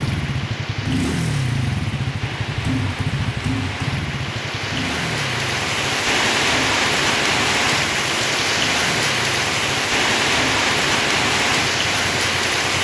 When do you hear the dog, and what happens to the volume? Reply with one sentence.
The dog can't be heard in this clip.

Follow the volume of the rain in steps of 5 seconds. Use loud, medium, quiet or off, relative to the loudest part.
medium, loud, loud.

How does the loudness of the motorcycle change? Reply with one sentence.
The loudness of the motorcycle goes down.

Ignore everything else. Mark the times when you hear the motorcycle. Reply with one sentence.
The motorcycle can be heard from 0.0 to 12.7 s.